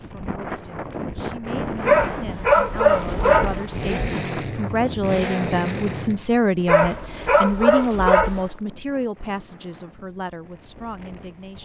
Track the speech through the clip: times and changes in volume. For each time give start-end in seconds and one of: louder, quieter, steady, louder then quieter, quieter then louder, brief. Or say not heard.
0.0-11.6 louder then quieter.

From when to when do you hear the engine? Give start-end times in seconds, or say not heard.
3.7-6.2.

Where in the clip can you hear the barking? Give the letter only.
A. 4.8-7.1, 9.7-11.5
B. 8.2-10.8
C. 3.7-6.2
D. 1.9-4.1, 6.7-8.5
D.